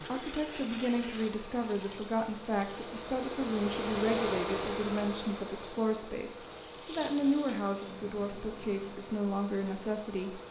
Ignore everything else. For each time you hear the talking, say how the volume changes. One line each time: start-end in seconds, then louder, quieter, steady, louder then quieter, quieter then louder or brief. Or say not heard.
0.1-10.4 steady.